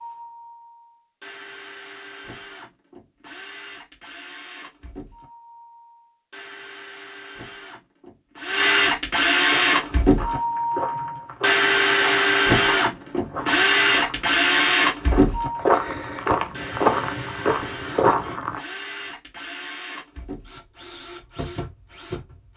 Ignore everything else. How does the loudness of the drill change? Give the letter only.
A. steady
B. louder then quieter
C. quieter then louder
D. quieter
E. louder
B.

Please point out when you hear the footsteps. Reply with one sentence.
The footsteps can be heard from 9.5 to 18.6 s.